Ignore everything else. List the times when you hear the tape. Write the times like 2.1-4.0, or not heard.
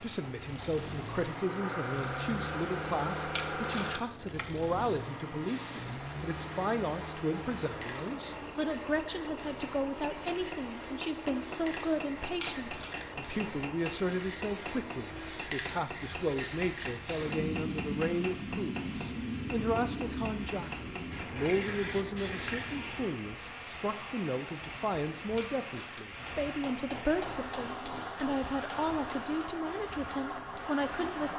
3.3-4.5, 12.3-13.1, 25.4-26.2.